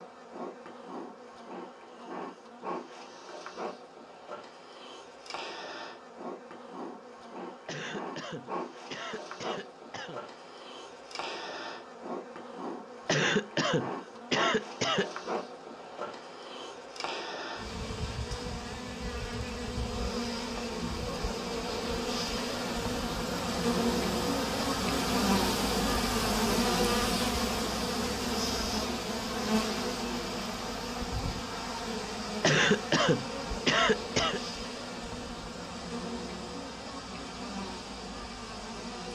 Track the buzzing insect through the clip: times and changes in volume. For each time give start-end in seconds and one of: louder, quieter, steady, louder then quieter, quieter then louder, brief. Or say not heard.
0.0-39.1 louder then quieter.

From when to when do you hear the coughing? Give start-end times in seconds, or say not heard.
7.7-10.2, 13.1-15.1, 32.4-34.4.